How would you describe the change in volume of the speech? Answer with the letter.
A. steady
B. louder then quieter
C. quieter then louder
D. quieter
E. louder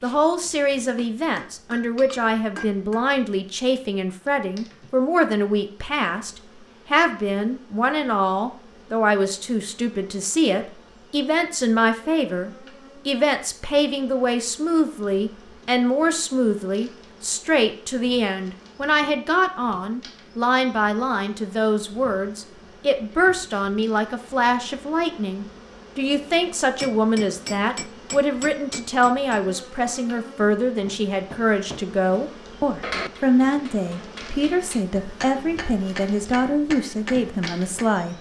A.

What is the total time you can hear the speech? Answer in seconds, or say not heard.
38 s.